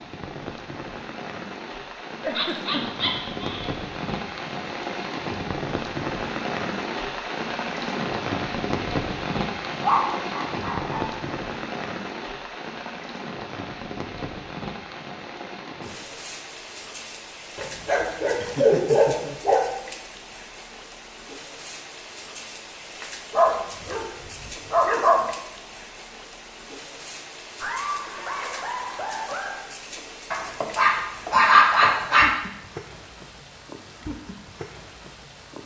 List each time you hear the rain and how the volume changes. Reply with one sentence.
The rain can be heard from 0.0 to 35.6 s, getting quieter.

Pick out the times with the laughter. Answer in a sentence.
The laughter can be heard from 2.2 to 3.0 s, from 18.4 to 19.4 s and from 27.6 to 29.6 s.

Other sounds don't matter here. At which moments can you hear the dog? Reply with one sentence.
You can hear the dog from 2.4 to 3.7 s, from 9.8 to 11.2 s, from 17.6 to 19.6 s, from 23.3 to 25.3 s and from 30.3 to 32.3 s.